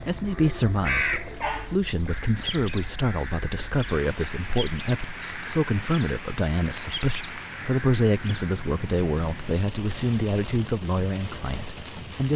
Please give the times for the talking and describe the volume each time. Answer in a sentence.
The talking can be heard from 0.0 to 12.3 s, at a steady volume.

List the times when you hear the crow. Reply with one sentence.
The crow can be heard from 0.0 to 8.6 s.